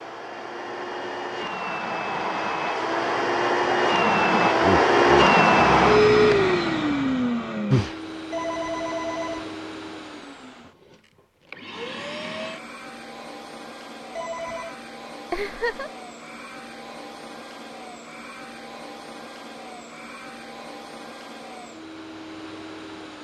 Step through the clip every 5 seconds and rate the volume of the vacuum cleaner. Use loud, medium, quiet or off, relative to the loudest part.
loud, loud, quiet, quiet, quiet.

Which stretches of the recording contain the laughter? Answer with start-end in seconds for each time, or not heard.
4.6-6.5, 15.3-15.9.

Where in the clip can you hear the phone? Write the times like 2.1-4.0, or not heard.
8.3-9.5, 14.2-14.8.